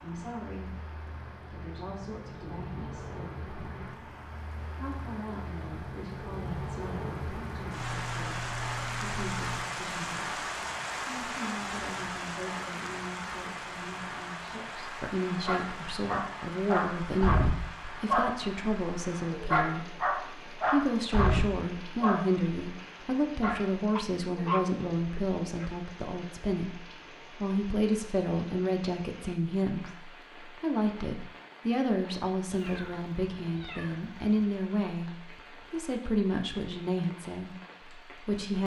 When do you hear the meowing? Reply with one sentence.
The meowing can be heard from 7.8 to 9.8 s and from 32.5 to 34.4 s.